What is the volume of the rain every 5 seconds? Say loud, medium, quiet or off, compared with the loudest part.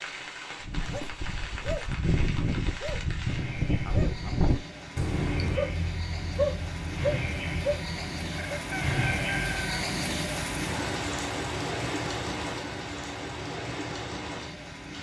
medium, loud, loud.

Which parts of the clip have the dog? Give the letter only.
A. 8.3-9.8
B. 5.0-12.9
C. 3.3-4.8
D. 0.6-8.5
D.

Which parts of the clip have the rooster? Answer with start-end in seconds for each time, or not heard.
8.3-9.8.